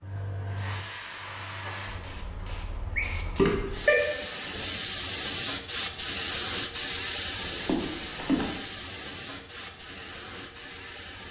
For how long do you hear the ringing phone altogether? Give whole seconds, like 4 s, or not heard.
2 s.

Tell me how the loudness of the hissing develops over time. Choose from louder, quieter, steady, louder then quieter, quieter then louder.
louder then quieter.